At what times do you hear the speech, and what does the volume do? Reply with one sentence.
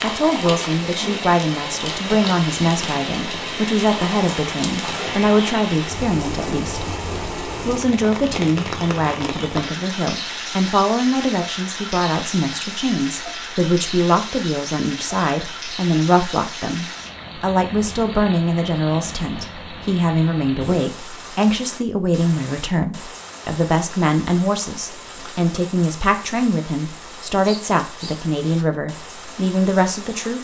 The speech can be heard from 0.0 to 30.4 s, at a steady volume.